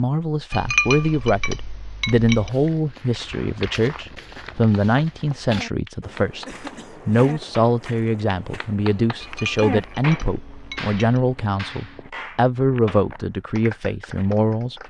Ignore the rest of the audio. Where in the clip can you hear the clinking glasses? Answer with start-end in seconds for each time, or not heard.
0.5-2.5, 9.2-11.2.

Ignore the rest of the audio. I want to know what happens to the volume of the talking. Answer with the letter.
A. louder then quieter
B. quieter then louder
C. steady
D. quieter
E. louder
C.